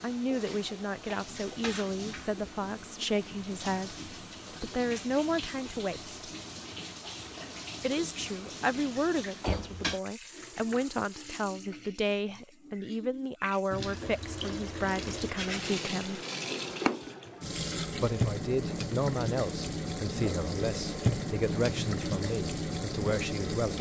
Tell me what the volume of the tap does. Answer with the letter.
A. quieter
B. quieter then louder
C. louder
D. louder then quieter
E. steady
C.